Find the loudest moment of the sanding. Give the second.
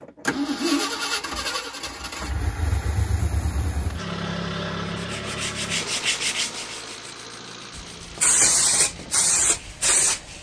6 s.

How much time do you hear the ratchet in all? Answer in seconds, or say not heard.
not heard.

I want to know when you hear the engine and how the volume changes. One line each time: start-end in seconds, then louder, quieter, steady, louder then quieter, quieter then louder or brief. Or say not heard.
0.0-10.3 quieter.